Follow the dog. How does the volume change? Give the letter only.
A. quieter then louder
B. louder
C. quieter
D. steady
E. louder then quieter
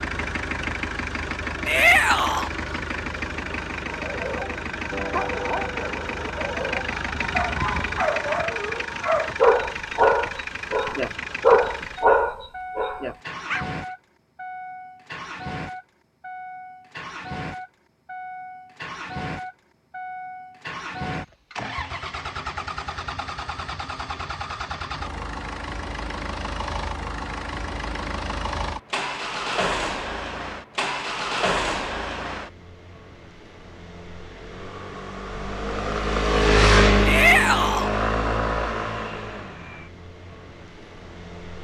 B.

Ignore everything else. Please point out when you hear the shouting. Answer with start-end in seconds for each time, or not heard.
1.6-2.5, 37.0-37.9.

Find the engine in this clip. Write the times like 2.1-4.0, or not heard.
0.0-41.5.